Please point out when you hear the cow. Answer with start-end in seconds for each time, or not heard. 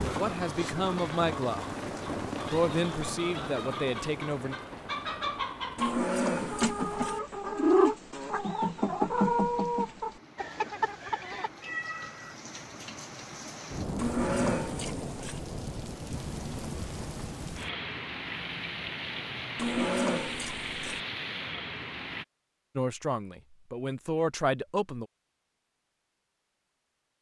5.8-7.2, 13.9-15.4, 19.6-21.0.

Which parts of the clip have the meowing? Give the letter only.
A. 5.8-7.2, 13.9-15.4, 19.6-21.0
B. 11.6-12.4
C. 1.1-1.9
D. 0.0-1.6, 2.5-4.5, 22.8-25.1
B.